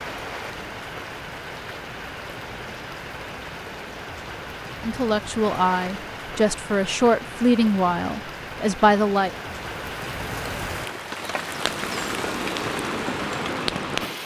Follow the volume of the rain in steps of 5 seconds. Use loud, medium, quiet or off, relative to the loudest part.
medium, medium, loud.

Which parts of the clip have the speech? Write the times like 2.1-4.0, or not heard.
4.8-9.3.